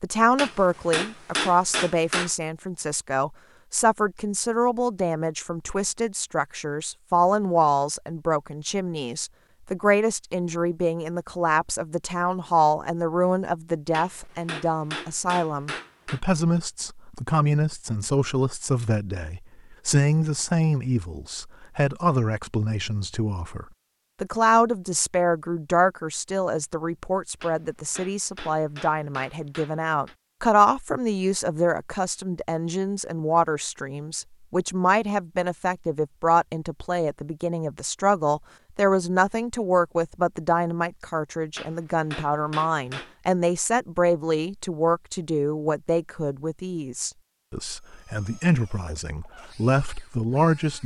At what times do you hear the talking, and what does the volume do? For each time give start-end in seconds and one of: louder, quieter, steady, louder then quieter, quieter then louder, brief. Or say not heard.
0.0-50.8 steady.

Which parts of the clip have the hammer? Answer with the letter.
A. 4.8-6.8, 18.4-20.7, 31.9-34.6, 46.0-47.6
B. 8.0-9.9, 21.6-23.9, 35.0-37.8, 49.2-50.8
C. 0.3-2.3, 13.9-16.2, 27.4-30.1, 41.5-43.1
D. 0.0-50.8
C.